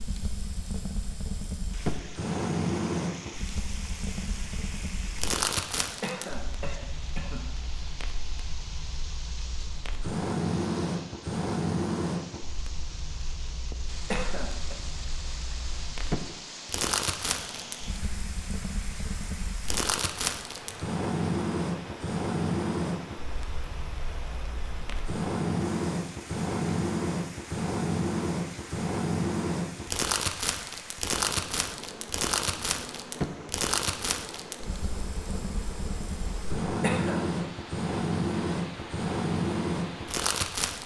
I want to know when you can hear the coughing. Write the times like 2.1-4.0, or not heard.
6.0-7.5, 14.1-14.8, 36.8-37.3.